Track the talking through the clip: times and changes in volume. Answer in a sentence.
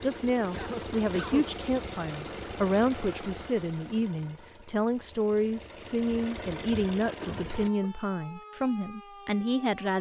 You can hear the talking from 0.0 to 9.9 s, at a steady volume.